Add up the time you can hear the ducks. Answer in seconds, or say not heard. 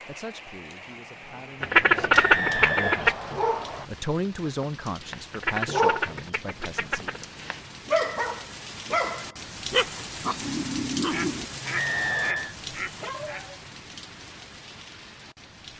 6 s.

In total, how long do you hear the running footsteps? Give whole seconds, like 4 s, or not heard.
not heard.